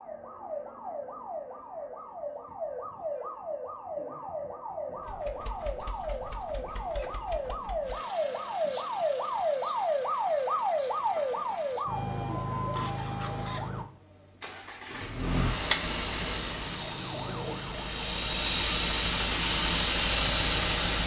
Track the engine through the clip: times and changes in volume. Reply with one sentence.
The engine can be heard from 5.0 to 21.0 s, getting louder.